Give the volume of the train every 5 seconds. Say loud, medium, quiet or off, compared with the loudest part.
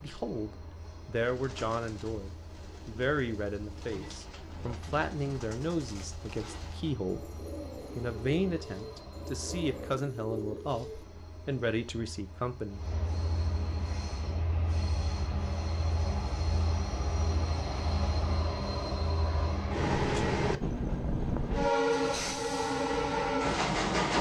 quiet, quiet, quiet, medium, loud.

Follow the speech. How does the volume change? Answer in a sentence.
The loudness of the speech stays about the same.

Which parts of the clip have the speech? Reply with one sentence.
You can hear the speech from 0.0 to 12.8 s.